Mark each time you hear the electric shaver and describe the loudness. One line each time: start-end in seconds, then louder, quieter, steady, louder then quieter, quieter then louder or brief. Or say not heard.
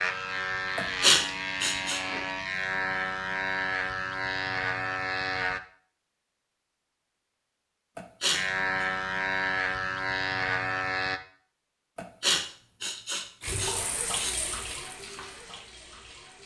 0.0-5.6 steady
8.3-11.2 brief.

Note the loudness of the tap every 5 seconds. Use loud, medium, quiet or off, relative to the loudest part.
off, off, loud, medium.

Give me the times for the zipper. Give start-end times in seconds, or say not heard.
not heard.